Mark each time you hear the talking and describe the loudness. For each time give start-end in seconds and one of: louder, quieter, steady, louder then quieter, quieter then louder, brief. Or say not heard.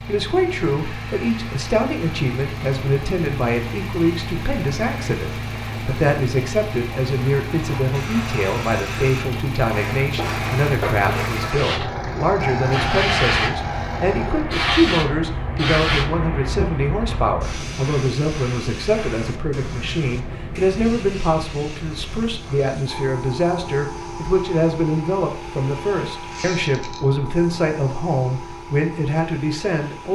0.1-30.1 steady.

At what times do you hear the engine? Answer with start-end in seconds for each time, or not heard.
0.0-14.5.